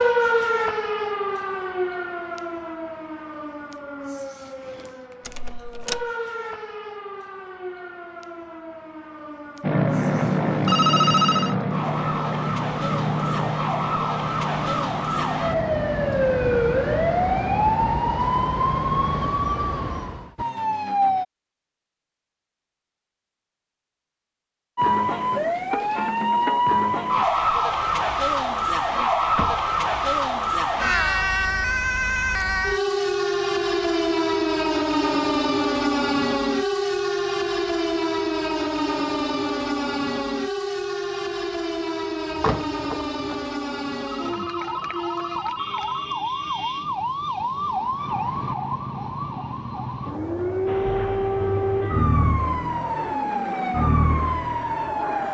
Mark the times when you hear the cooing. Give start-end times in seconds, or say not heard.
not heard.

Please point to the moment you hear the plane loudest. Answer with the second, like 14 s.
10 s.